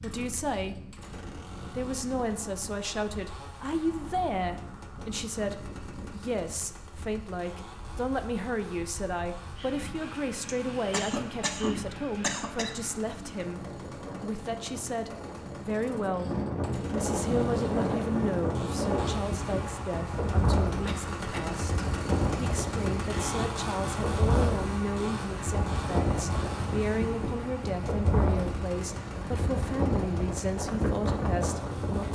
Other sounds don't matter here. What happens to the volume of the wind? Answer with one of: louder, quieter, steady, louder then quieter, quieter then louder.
louder.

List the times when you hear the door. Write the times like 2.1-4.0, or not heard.
not heard.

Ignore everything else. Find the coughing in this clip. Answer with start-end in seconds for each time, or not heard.
10.4-12.8, 20.9-21.6.